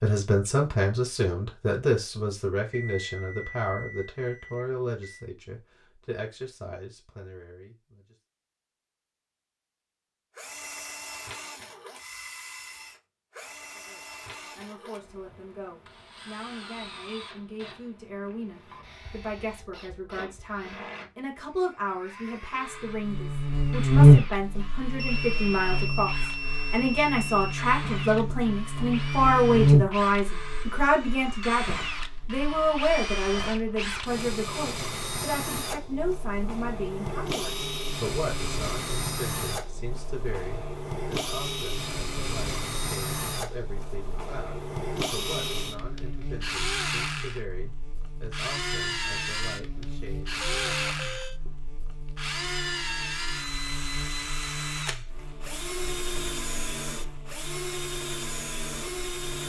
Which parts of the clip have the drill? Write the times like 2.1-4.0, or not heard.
10.3-59.4.